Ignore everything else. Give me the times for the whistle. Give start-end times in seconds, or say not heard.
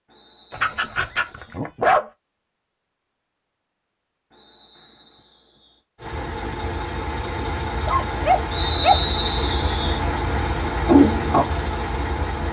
0.1-1.5, 4.3-5.8, 8.5-10.0.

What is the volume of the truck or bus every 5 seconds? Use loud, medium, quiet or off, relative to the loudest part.
off, medium, loud.